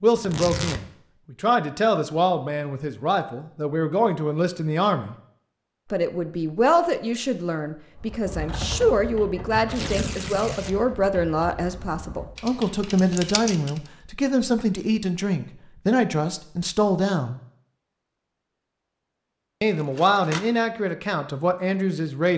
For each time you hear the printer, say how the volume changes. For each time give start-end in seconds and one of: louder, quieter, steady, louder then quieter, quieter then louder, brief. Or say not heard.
not heard.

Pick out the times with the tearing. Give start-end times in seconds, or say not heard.
0.1-0.8, 9.7-10.8, 19.6-20.4.